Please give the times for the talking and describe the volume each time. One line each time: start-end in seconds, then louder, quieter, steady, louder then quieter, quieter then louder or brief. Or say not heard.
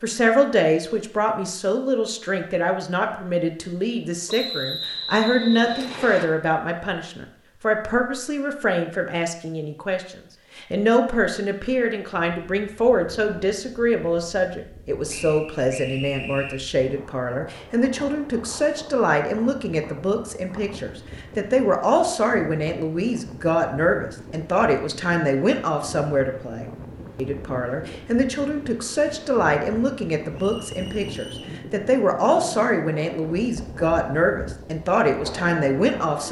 0.0-36.2 steady.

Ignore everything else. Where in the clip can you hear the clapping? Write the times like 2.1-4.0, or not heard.
not heard.